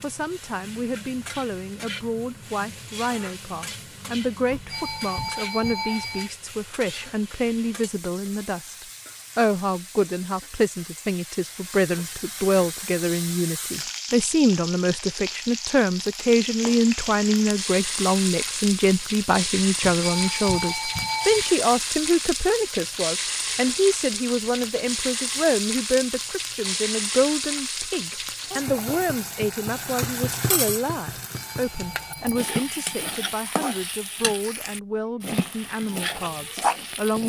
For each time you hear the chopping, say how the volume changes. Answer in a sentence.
The chopping can't be heard in this clip.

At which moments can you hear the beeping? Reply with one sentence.
The beeping can be heard from 4.5 to 6.3 s, from 19.8 to 21.6 s and from 31.2 to 33.1 s.